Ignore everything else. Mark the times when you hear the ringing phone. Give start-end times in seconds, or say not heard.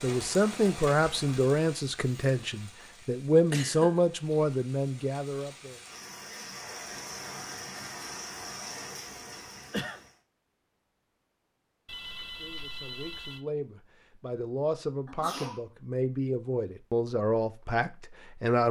11.8-13.4.